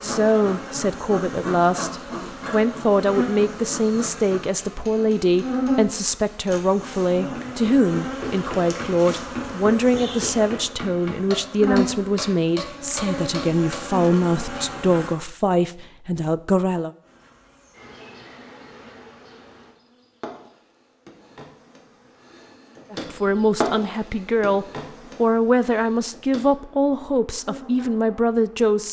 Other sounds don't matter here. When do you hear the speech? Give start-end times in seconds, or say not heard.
0.0-16.9, 22.9-28.8.